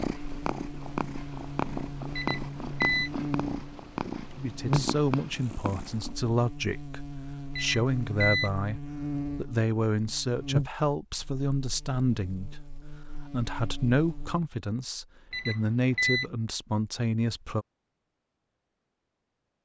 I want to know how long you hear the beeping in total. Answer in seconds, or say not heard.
3 s.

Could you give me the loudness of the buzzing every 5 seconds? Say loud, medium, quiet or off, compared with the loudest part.
loud, loud, loud, off.